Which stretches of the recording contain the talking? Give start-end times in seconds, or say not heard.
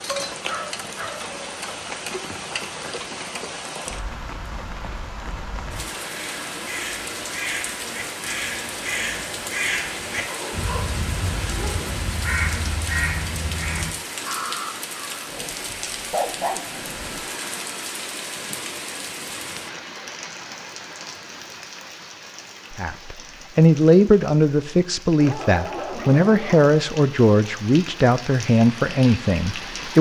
22.7-29.9.